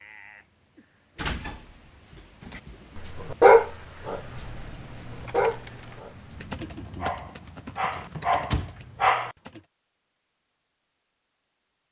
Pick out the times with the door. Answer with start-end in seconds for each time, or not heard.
1.1-3.0, 8.0-8.8.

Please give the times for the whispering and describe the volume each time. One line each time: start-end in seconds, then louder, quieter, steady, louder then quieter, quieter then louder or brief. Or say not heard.
not heard.